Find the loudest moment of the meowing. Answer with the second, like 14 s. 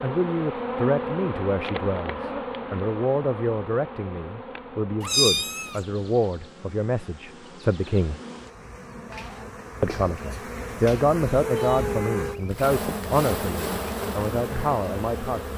5 s.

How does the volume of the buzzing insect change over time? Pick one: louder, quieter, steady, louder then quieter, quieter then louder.
quieter then louder.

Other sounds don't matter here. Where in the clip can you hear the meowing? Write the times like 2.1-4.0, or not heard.
5.0-5.8, 11.4-12.5.